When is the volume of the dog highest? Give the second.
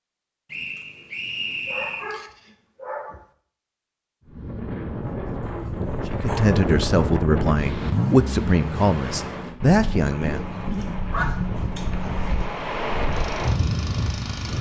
11 s.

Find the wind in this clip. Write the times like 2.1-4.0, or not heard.
4.2-14.5.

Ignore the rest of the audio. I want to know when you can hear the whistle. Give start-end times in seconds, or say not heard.
0.5-2.1.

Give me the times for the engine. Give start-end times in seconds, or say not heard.
13.1-14.5.